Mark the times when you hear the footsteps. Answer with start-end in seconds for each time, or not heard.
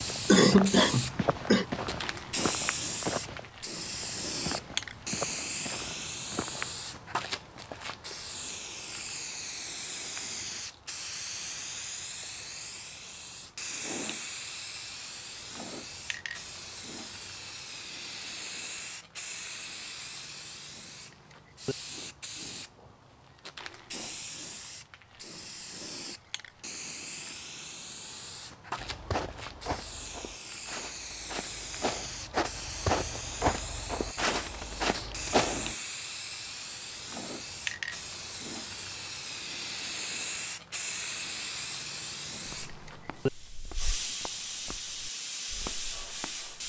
0.0-6.8, 28.8-35.8, 42.5-46.5.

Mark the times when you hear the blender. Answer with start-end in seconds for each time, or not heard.
not heard.